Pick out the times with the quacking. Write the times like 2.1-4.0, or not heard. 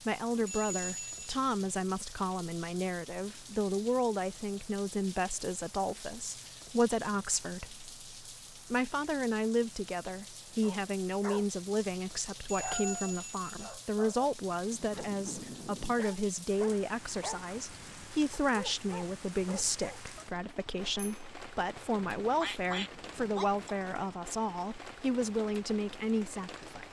22.2-23.8.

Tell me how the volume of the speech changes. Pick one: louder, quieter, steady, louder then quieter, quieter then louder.
steady.